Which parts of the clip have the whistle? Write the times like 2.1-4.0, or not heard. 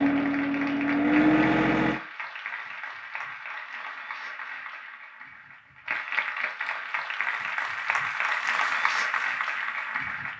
not heard.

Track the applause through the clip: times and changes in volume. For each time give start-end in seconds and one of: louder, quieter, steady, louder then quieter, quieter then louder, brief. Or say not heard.
0.0-10.3 louder.